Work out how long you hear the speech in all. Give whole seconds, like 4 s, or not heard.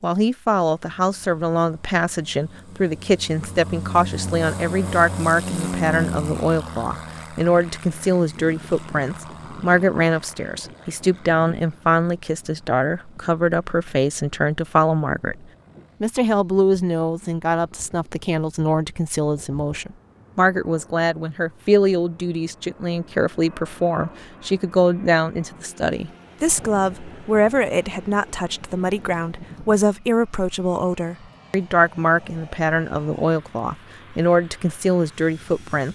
35 s.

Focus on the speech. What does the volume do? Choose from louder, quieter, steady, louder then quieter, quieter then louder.
steady.